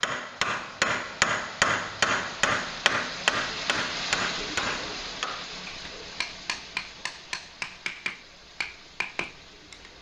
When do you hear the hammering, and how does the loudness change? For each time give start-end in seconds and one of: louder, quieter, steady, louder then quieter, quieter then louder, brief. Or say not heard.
0.0-9.9 quieter.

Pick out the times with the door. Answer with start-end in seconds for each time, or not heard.
not heard.